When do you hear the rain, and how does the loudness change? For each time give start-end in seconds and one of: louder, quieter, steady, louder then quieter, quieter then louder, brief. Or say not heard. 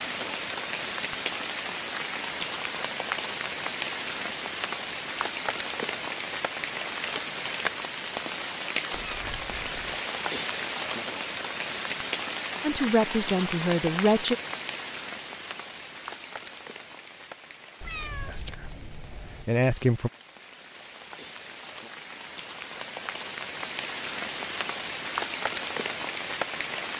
0.0-26.9 quieter then louder.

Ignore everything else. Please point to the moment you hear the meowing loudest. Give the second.
18 s.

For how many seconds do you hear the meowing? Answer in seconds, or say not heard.
3 s.